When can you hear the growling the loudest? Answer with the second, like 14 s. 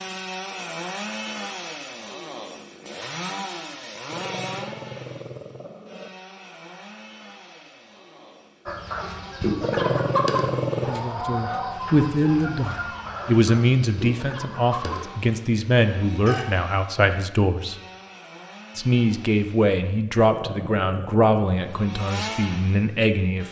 10 s.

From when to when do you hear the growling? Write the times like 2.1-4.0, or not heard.
4.0-6.1, 9.6-11.0, 20.1-21.9.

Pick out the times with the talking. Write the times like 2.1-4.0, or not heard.
10.8-17.8, 18.8-23.4.